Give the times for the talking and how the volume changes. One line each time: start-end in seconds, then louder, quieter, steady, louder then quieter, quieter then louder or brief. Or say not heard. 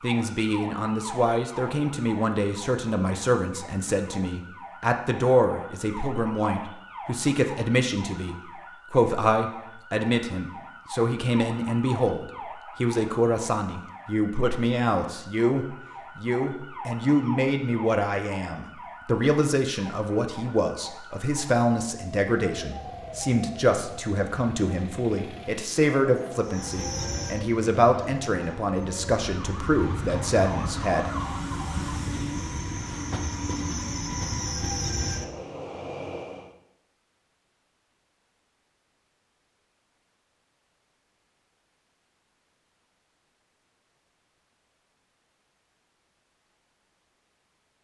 0.0-31.1 steady.